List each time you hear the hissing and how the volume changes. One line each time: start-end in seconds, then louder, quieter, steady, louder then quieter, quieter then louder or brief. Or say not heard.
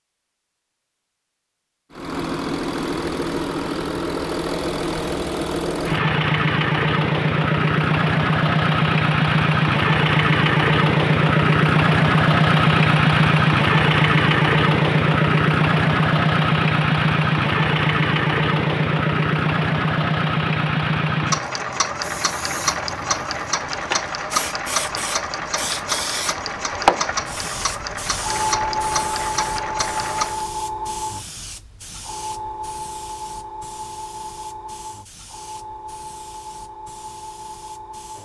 22.0-38.2 louder then quieter.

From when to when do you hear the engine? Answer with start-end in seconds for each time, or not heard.
1.9-30.4.